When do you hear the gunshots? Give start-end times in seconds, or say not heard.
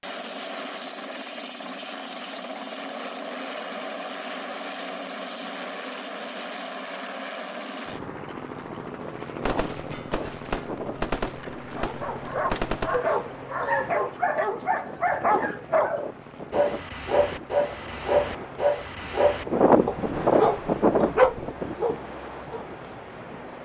9.4-13.0.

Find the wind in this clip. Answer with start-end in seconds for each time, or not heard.
8.8-23.6.